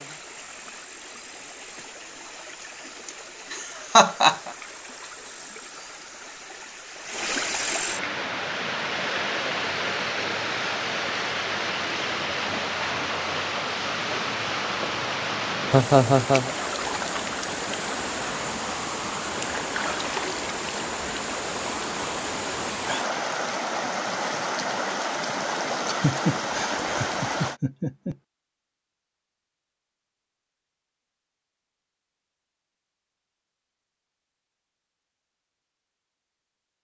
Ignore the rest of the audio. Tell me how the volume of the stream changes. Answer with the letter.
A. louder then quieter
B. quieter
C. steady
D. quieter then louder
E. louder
E.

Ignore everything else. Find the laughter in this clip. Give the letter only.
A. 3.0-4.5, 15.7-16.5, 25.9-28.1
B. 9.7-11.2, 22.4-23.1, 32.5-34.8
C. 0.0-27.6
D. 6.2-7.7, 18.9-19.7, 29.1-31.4
A.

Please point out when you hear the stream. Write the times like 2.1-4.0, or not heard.
0.0-27.6.